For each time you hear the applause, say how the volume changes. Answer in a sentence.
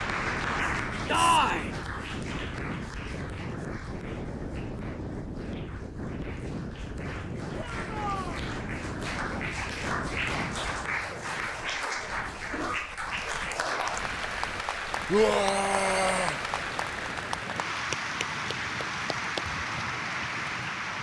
You can hear the applause from 0.0 to 20.9 s, getting quieter then louder.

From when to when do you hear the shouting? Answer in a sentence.
You can hear the shouting from 1.1 to 1.7 s, from 7.5 to 8.4 s and from 15.1 to 16.4 s.